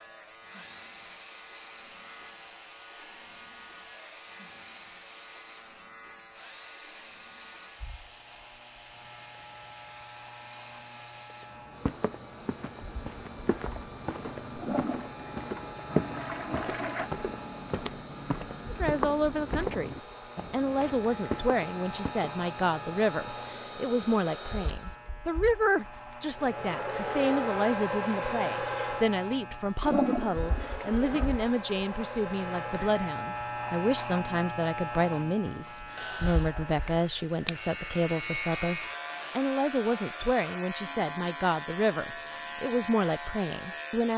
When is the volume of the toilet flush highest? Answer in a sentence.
The loudest moment of the toilet flush is at 30 seconds.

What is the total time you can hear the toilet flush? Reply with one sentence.
You can hear the toilet flush for 4 seconds altogether.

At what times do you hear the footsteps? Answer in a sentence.
The footsteps can be heard from 11.3 to 22.3 s.